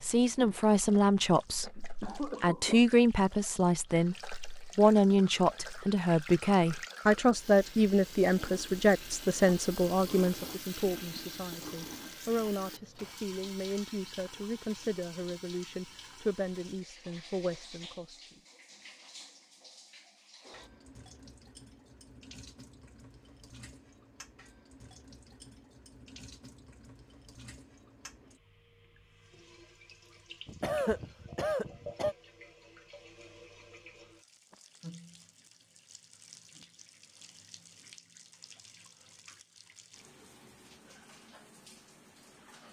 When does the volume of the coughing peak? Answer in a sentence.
The volume of the coughing peaks at 31 seconds.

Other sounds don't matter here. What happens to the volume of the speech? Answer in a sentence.
The volume of the speech goes down.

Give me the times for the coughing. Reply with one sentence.
The coughing can be heard from 1.8 to 2.8 s and from 30.4 to 32.1 s.